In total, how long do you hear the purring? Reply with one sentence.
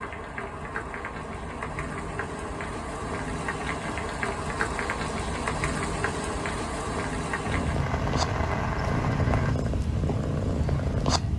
You can hear the purring for 4 seconds altogether.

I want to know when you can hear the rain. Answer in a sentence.
The rain can be heard from 0.0 to 9.6 s.